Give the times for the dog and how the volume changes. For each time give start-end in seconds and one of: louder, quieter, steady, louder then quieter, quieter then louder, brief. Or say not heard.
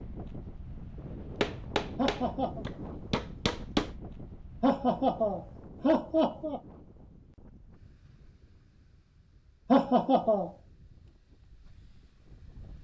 not heard.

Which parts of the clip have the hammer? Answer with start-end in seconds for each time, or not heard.
1.4-3.9.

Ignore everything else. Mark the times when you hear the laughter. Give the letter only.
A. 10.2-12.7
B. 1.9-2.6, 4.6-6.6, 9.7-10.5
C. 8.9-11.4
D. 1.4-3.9
B.